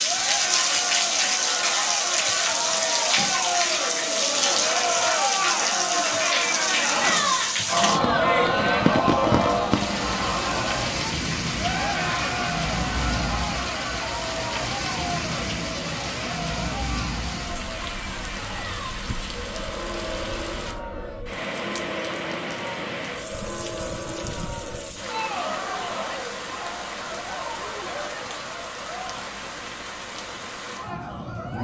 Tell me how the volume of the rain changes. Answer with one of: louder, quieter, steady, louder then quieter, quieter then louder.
quieter.